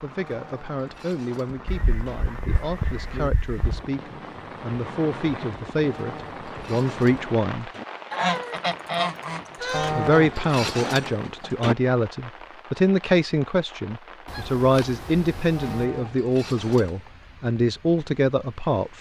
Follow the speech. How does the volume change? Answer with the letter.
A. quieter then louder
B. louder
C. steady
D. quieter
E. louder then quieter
B.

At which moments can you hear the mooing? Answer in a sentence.
You can hear the mooing from 0.1 to 2.2 s, from 5.8 to 7.8 s, from 9.7 to 11.8 s and from 15.6 to 17.1 s.